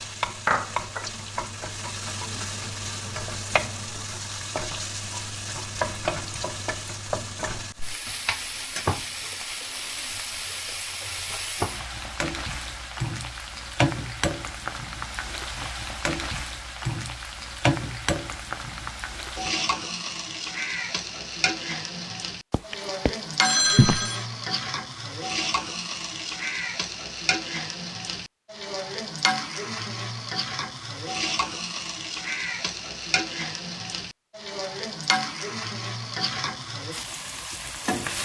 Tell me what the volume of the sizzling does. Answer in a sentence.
The loudness of the sizzling stays about the same.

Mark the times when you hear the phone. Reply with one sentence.
The phone can be heard from 22.5 to 24.2 s.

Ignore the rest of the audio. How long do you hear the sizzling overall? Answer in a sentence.
The sizzling can be heard for 38 seconds in total.